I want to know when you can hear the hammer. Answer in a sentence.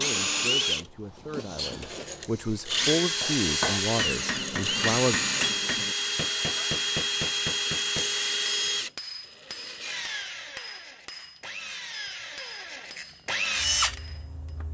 The hammer can be heard from 3.2 to 14.6 s.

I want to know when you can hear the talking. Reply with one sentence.
You can hear the talking from 0.0 to 5.2 s.